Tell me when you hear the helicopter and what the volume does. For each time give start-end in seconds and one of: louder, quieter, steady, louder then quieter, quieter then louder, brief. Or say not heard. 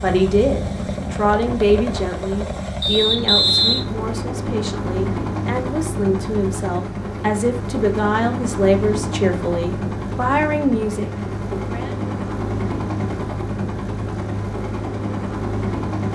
0.0-16.0 steady.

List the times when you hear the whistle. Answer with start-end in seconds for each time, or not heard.
2.8-3.9.